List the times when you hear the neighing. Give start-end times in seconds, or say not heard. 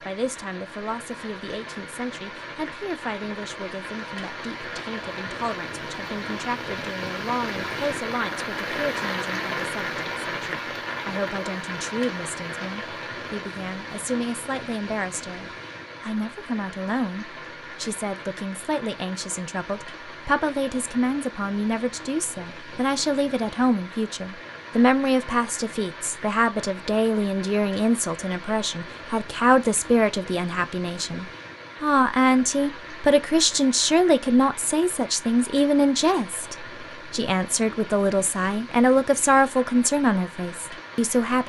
not heard.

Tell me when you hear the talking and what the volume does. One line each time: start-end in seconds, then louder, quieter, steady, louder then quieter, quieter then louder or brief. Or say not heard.
0.0-41.4 louder.